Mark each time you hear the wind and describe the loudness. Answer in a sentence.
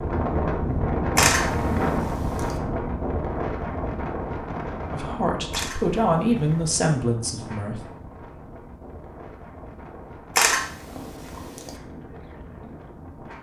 The wind can be heard from 0.0 to 13.3 s, getting quieter.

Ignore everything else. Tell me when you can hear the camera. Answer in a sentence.
You can hear the camera from 1.1 to 2.5 s, from 5.5 to 6.7 s and from 10.3 to 11.8 s.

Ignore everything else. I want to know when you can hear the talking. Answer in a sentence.
You can hear the talking from 4.9 to 7.8 s.